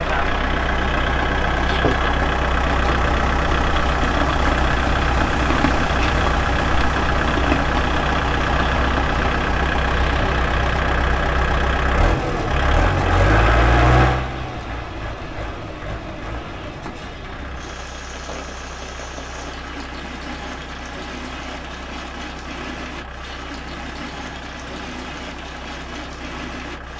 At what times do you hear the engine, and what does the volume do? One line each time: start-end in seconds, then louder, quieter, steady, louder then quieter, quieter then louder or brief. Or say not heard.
0.0-26.9 quieter.